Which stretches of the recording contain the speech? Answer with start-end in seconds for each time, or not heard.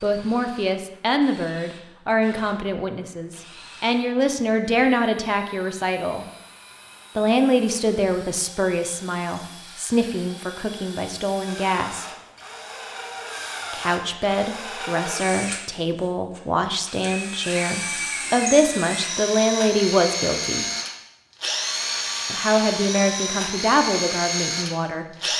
0.0-6.2, 7.2-12.1, 13.7-20.6, 22.3-25.1.